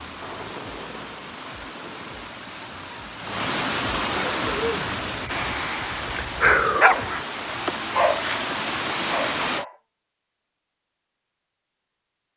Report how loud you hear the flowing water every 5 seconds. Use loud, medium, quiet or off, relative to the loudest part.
loud, loud, off.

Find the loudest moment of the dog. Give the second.
7 s.